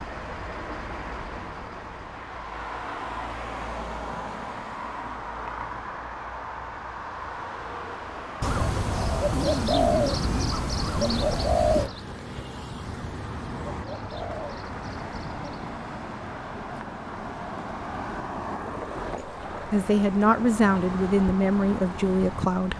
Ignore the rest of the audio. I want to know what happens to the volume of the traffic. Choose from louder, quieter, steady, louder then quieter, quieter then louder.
steady.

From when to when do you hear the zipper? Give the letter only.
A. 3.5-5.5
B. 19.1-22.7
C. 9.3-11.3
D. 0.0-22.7
C.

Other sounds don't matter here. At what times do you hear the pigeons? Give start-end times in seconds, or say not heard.
8.4-15.7.